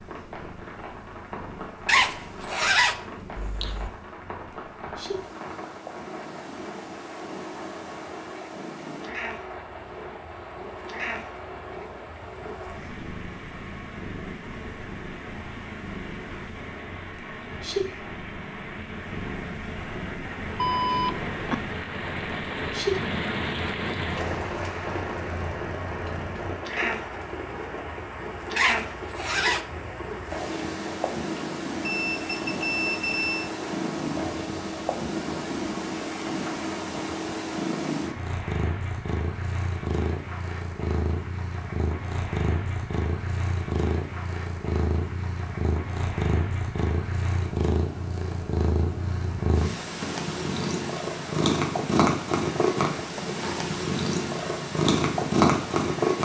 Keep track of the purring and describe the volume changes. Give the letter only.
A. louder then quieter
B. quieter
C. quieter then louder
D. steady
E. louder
E.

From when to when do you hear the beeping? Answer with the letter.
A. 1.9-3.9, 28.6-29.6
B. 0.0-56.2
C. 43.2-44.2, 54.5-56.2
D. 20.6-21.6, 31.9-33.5
D.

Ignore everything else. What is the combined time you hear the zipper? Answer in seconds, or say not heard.
3 s.